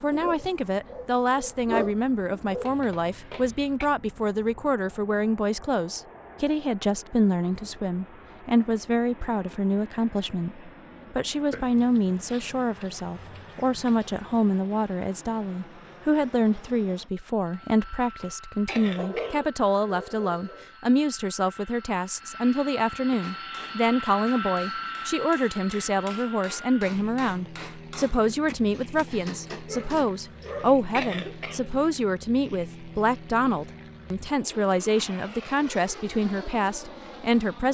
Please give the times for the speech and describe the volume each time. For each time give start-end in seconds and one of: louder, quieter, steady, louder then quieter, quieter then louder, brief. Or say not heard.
0.0-37.6 steady.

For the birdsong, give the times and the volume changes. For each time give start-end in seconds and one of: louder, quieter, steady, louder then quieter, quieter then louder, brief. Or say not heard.
not heard.